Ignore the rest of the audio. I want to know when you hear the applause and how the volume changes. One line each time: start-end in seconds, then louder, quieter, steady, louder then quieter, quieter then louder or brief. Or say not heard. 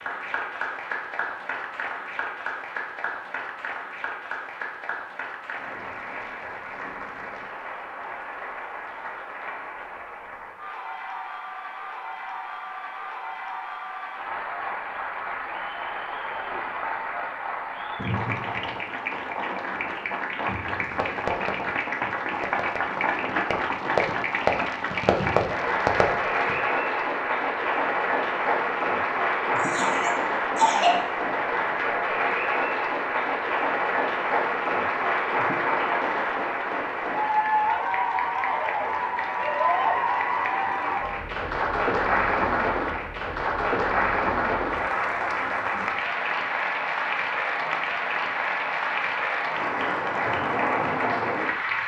0.0-51.8 louder.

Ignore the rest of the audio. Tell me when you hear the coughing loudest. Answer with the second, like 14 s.
31 s.